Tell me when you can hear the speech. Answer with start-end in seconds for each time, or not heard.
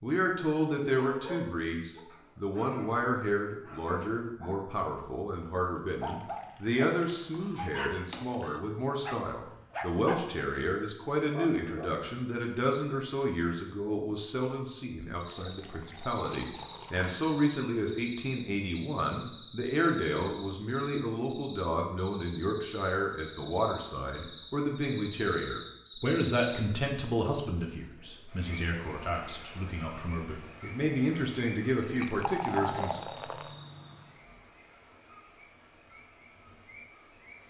0.0-33.0.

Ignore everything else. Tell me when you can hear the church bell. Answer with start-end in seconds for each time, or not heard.
not heard.